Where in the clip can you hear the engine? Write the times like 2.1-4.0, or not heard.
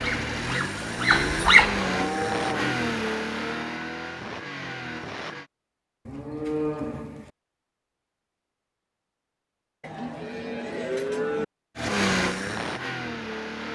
0.0-5.5, 11.8-13.7.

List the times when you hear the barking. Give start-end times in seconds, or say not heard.
0.0-1.8.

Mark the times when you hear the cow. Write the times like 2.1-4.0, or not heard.
0.8-2.8, 6.0-7.3, 9.8-11.4.